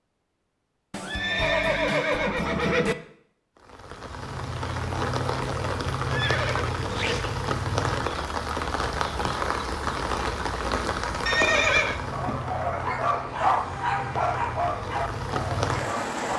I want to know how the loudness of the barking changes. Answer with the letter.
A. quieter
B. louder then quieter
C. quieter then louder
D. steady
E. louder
A.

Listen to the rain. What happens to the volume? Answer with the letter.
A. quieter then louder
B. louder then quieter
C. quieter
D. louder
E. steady
E.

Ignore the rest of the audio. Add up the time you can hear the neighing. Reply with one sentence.
You can hear the neighing for 4 seconds altogether.